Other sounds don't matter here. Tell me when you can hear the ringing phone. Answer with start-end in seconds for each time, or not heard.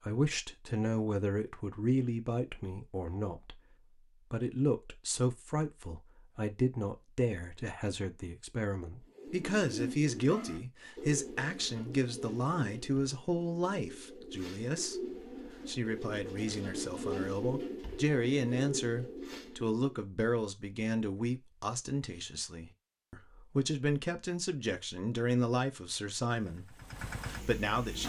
not heard.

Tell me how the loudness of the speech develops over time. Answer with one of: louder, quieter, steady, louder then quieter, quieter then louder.
steady.